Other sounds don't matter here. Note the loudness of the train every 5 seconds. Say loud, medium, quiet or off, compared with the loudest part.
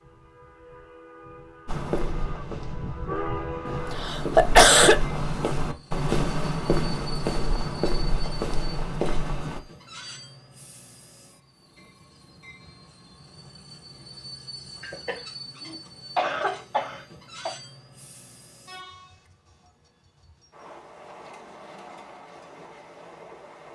loud, medium, medium, medium, medium.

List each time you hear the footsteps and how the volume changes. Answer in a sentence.
The footsteps can be heard from 1.6 to 9.6 s, getting louder.